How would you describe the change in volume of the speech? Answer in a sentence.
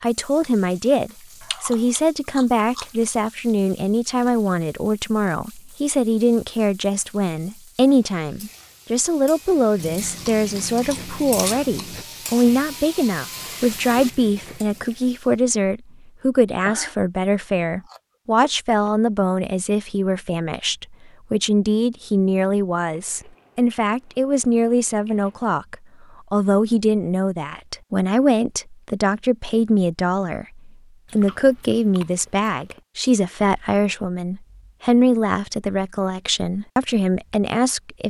The loudness of the speech stays about the same.